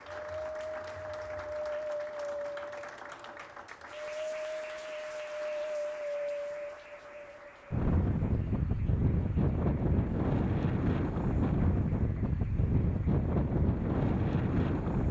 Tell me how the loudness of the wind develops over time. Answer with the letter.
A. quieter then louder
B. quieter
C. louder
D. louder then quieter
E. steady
C.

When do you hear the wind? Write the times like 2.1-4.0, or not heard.
0.0-15.0.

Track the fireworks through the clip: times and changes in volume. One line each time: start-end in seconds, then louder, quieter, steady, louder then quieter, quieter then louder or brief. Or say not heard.
not heard.